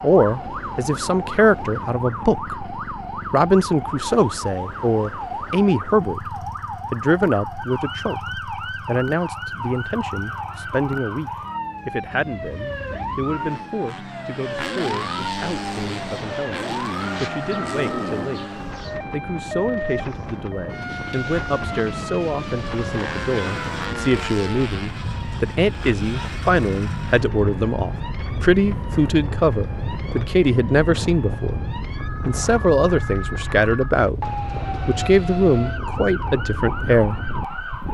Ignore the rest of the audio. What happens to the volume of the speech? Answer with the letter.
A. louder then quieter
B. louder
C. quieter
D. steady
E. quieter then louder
E.